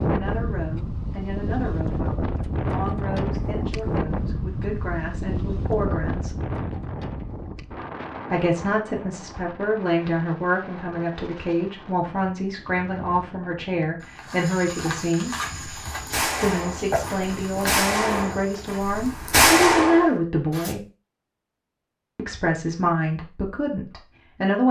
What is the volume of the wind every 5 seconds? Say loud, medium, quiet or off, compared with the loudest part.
loud, medium, quiet, quiet, off.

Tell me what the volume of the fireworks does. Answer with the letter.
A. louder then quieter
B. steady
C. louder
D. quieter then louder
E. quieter
D.